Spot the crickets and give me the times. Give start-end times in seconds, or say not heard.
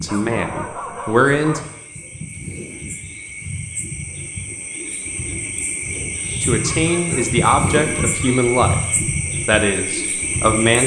0.0-10.8.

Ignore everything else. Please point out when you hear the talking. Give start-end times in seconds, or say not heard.
0.0-1.6, 6.4-8.8, 9.4-10.8.